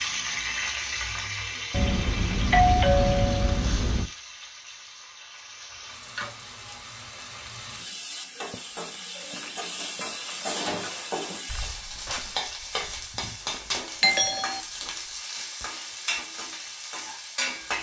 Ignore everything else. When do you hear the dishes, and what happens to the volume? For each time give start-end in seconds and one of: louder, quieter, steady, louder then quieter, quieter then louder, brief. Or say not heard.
not heard.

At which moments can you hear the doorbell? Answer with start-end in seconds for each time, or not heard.
1.7-4.0, 14.0-14.6.